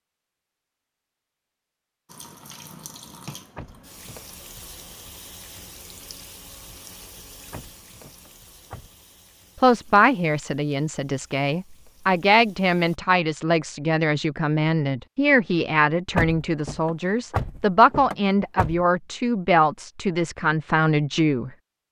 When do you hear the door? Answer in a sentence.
The door can be heard from 3.5 to 4.3 s, from 7.5 to 8.9 s and from 16.1 to 18.9 s.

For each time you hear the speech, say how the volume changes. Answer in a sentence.
The speech can be heard from 9.6 to 21.5 s, at a steady volume.